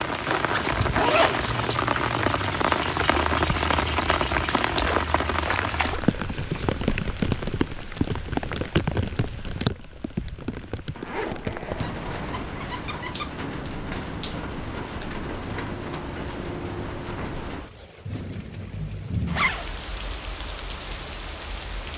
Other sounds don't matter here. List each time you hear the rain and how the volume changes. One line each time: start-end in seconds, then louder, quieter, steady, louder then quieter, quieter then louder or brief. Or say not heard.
0.0-21.9 quieter.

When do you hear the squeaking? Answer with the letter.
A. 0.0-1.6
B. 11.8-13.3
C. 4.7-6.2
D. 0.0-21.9
B.